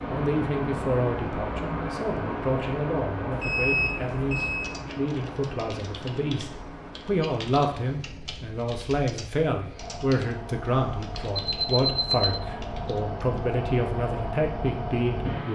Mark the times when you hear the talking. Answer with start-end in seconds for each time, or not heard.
0.1-15.4.